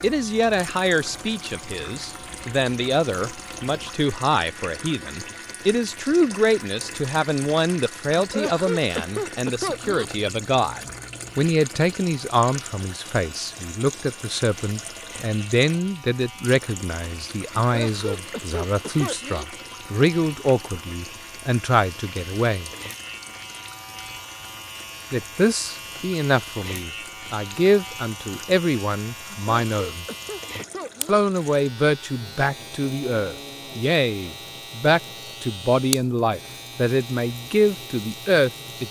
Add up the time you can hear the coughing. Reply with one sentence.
You can hear the coughing for 6 seconds altogether.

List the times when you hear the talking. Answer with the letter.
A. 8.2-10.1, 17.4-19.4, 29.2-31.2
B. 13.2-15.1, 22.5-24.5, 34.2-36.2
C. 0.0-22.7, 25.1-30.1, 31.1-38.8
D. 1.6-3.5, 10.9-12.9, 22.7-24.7
C.